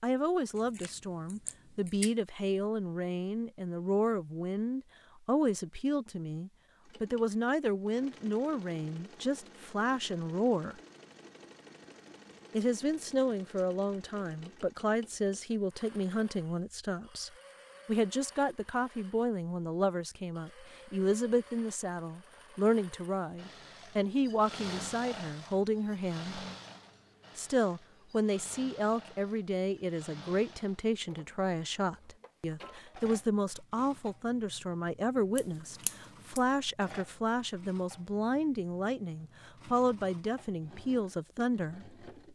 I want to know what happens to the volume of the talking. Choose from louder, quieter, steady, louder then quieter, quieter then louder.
steady.